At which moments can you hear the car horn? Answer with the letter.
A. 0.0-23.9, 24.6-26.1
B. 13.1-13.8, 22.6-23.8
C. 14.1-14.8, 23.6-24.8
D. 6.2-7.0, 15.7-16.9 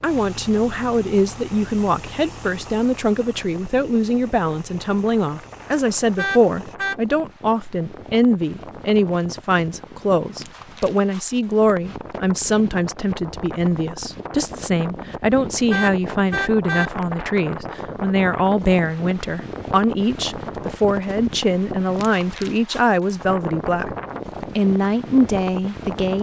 D.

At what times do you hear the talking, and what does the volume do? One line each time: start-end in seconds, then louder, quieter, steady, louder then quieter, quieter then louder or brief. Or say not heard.
0.0-23.9 steady
24.6-26.1 brief.